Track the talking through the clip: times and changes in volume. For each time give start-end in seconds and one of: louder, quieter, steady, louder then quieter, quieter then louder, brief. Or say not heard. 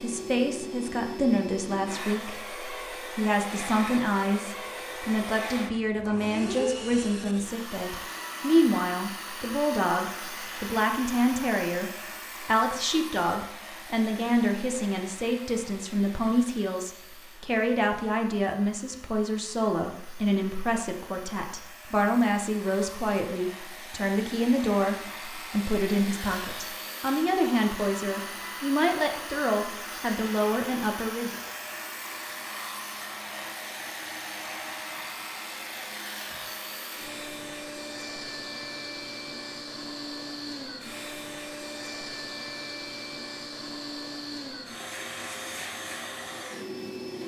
0.0-31.4 steady.